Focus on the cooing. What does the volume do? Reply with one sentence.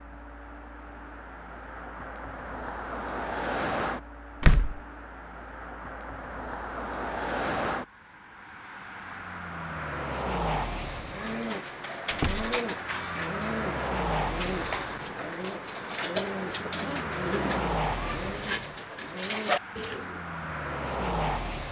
The loudness of the cooing stays about the same.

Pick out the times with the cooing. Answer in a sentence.
You can hear the cooing from 11.1 to 20.2 s.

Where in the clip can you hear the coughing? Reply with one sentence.
The coughing can't be heard in this clip.